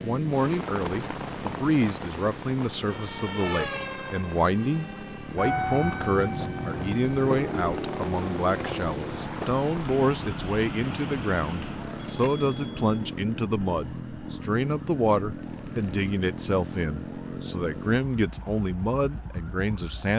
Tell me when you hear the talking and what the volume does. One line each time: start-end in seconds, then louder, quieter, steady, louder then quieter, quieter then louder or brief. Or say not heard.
0.0-20.1 steady.